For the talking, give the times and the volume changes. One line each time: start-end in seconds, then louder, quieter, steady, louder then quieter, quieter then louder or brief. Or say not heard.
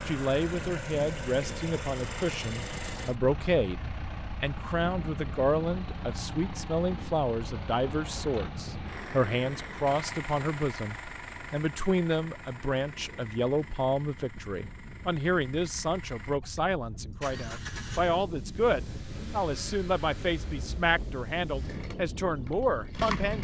0.1-23.3 steady.